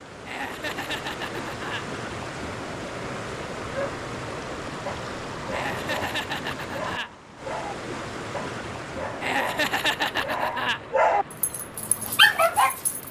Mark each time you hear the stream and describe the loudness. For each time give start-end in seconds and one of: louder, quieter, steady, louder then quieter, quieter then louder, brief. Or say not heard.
0.0-13.0 quieter.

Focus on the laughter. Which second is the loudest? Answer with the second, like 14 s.
10 s.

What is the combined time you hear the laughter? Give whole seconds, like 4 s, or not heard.
5 s.